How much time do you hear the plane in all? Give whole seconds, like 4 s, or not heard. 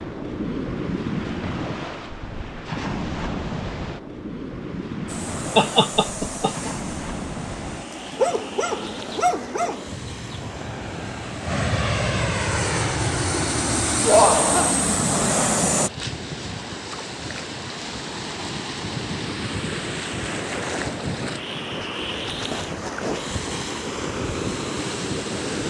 11 s.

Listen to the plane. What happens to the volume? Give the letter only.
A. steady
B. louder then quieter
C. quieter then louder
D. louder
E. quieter
D.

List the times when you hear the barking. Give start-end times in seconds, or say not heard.
7.9-10.4.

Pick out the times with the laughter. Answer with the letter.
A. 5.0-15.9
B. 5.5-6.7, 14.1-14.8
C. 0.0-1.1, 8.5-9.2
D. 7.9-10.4
B.